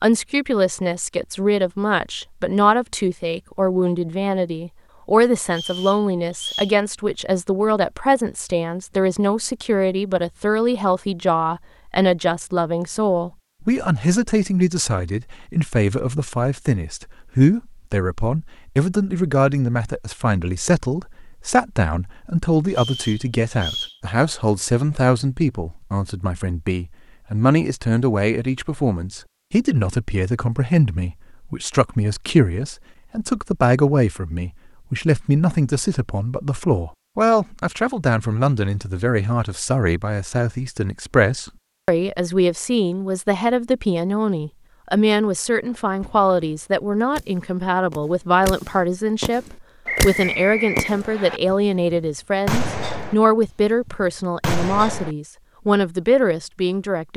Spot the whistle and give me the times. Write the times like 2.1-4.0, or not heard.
5.5-6.8, 22.7-23.9, 49.9-51.4.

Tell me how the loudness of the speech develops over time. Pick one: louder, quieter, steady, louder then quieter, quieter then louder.
steady.